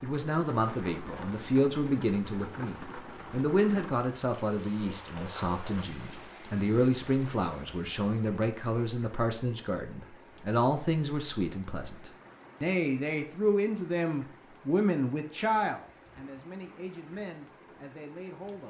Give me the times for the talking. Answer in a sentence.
The talking can be heard from 0.0 to 18.6 s.